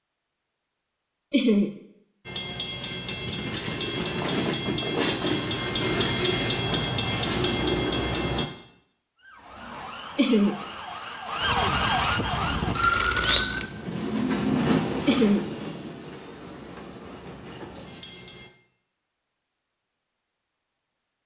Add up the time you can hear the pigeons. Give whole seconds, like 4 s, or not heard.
not heard.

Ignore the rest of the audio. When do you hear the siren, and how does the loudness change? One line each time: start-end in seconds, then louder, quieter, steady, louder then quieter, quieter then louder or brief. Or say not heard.
9.2-13.8 louder.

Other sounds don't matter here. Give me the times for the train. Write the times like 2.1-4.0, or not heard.
2.2-8.4, 12.6-18.5.